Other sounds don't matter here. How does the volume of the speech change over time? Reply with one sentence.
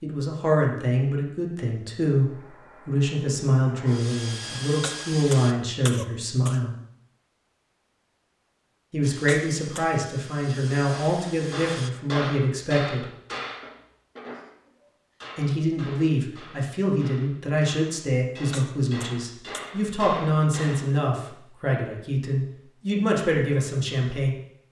The loudness of the speech stays about the same.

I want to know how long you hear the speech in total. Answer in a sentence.
The speech can be heard for 20 seconds in total.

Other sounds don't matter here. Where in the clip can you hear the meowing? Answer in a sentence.
You can't hear the meowing here.